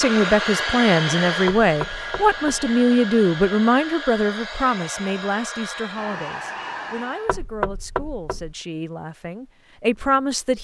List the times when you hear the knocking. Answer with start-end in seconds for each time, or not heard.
1.4-2.7, 7.2-8.6.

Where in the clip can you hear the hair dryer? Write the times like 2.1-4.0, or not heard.
0.0-7.4.